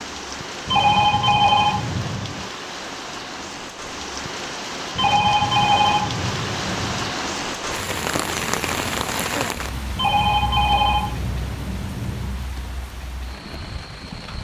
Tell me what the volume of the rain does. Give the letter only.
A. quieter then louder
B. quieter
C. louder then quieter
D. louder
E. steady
C.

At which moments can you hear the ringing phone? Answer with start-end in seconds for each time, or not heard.
0.7-2.5, 5.0-7.2, 9.9-12.4.